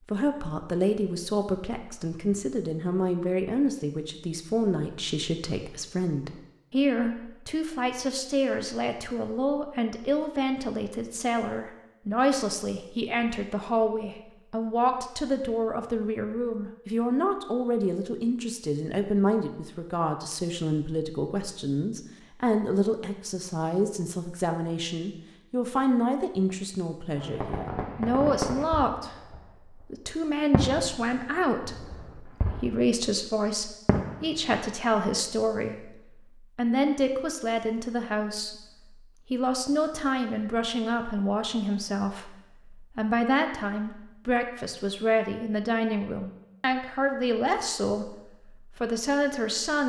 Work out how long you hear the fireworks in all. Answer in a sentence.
The fireworks can be heard for 5 seconds in total.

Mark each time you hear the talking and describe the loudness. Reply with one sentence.
The talking can be heard from 0.1 to 49.8 s, at a steady volume.